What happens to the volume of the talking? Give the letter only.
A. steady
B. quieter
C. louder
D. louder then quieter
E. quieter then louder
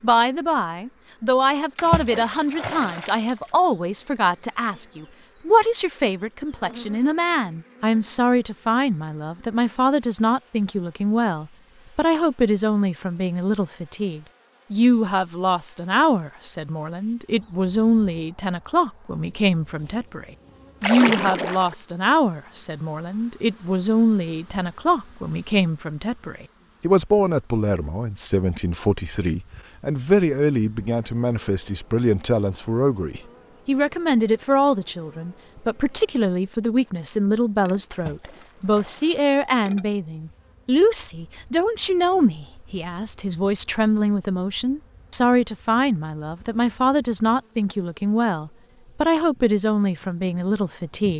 A.